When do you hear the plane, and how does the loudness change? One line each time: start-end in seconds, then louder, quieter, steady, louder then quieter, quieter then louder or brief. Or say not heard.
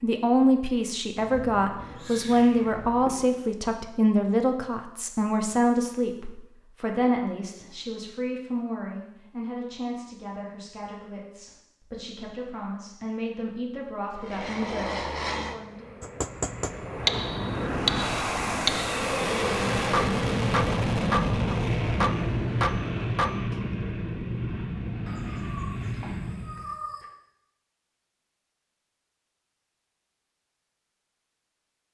14.2-26.7 louder then quieter.